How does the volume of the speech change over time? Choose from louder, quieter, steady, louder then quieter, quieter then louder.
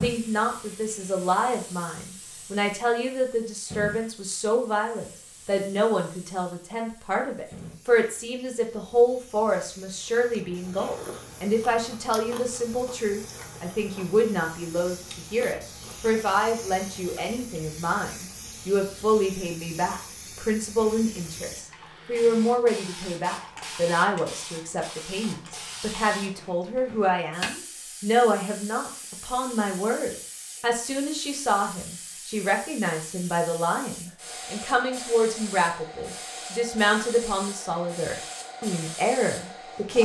steady.